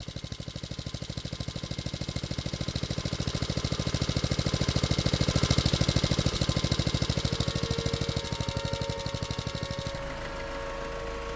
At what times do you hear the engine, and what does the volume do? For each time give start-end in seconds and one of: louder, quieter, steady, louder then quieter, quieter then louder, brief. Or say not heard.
0.0-11.3 louder then quieter.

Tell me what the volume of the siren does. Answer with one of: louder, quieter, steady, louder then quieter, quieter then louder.
steady.